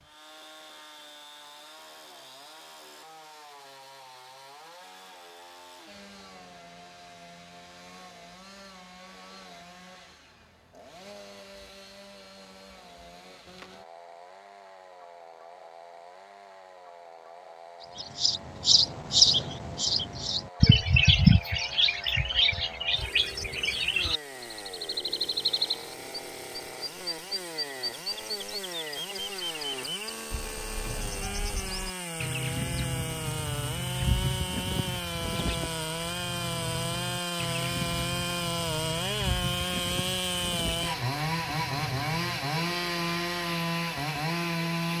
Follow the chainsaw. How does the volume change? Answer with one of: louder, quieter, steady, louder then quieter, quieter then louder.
louder.